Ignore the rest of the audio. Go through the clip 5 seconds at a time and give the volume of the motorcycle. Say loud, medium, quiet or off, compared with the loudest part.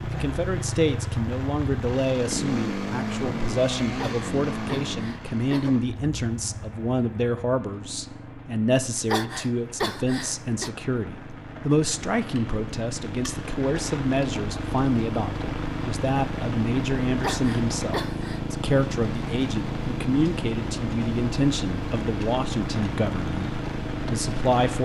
loud, medium, medium, loud, loud.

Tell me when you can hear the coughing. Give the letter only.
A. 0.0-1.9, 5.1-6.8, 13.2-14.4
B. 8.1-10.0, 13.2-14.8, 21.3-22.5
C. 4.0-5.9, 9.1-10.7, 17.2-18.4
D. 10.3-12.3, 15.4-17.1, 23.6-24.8
C.